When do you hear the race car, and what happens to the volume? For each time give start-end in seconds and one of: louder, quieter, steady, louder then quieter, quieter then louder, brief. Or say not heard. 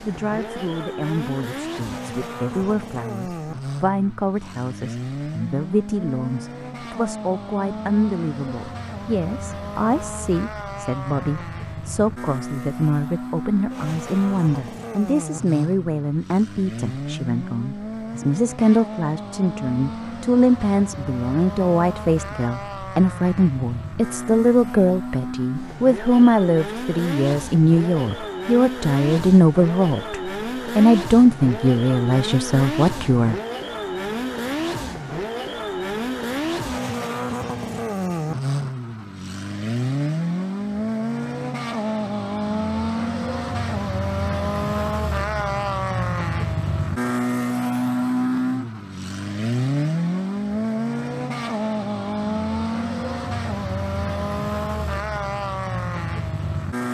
0.0-56.8 louder.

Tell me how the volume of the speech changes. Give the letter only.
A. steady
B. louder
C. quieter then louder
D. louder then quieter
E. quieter
B.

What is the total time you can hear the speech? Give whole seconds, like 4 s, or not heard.
33 s.